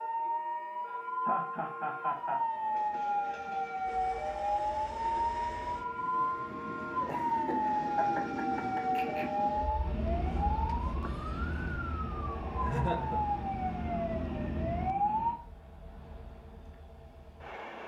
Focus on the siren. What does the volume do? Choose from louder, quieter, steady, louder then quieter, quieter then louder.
steady.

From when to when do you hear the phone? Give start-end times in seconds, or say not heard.
not heard.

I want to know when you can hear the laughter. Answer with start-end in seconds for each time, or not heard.
0.8-2.4, 7.0-9.3, 12.6-13.2.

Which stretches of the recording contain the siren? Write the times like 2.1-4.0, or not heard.
0.0-15.4.